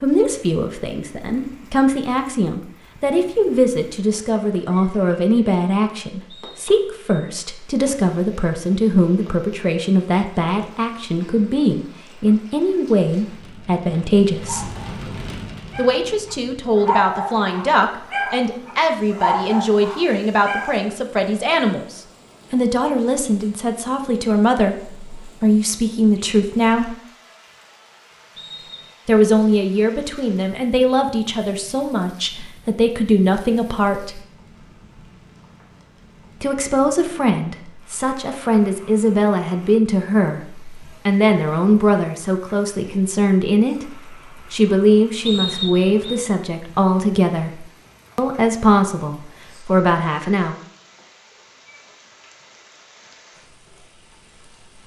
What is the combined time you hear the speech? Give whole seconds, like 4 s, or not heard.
45 s.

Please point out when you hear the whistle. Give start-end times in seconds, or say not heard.
6.3-7.2, 28.4-28.9, 45.2-46.1.